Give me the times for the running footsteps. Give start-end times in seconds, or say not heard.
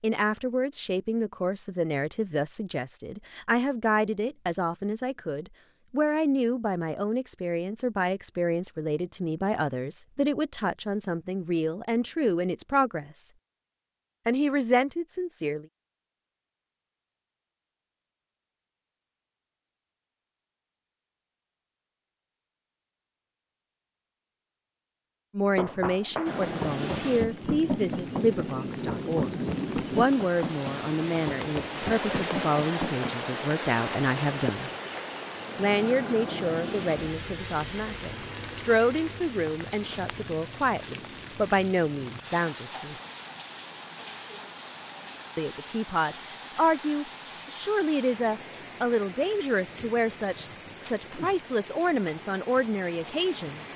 25.4-33.2.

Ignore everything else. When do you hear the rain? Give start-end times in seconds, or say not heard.
26.2-53.7.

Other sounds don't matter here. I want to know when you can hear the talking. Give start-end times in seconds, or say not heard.
0.0-13.3, 14.2-15.7, 25.4-34.7, 35.5-43.0, 45.4-53.7.